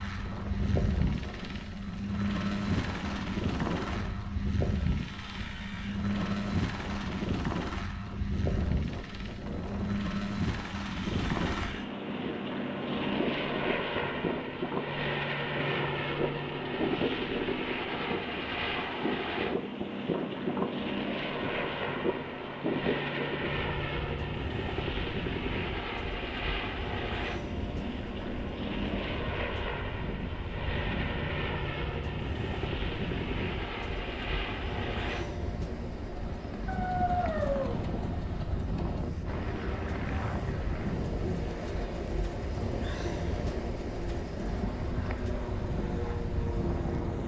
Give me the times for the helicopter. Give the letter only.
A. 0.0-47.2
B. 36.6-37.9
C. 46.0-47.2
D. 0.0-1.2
A.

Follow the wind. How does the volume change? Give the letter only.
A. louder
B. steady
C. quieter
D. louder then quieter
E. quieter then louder
A.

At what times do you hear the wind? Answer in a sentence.
You can hear the wind from 0.0 to 47.2 s.